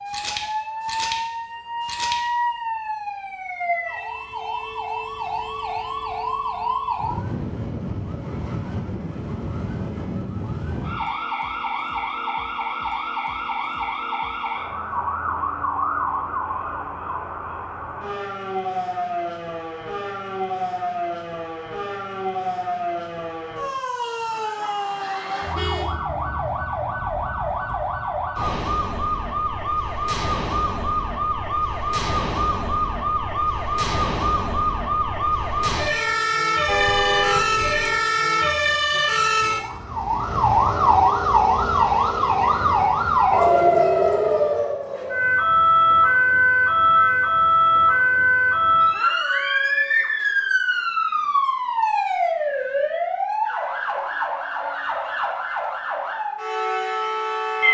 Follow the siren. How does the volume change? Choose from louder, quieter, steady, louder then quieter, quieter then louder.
louder.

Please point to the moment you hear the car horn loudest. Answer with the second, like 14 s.
37 s.